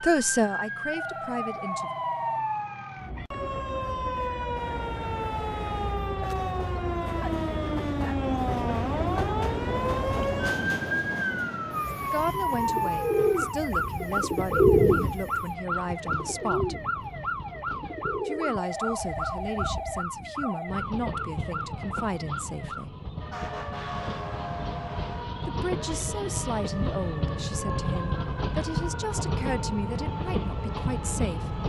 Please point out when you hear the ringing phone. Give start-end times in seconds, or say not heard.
0.9-2.5, 18.6-20.8.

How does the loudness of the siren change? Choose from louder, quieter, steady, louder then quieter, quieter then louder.
quieter.